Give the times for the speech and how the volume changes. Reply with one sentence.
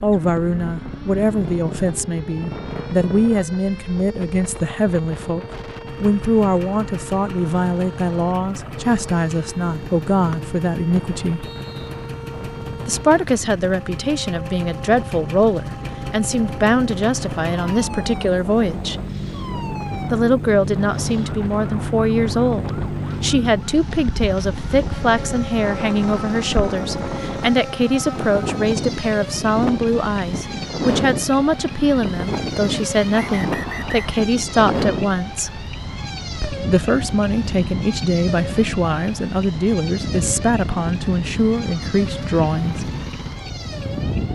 The speech can be heard from 0.0 to 11.4 s, at a steady volume; from 12.8 to 19.0 s, at a steady volume; from 20.1 to 35.6 s, at a steady volume; and from 36.6 to 42.9 s, at a steady volume.